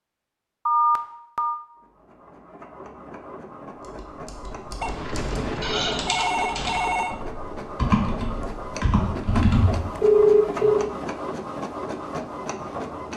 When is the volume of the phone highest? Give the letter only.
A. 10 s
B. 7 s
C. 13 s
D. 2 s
A.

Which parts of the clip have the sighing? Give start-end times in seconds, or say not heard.
5.6-6.2.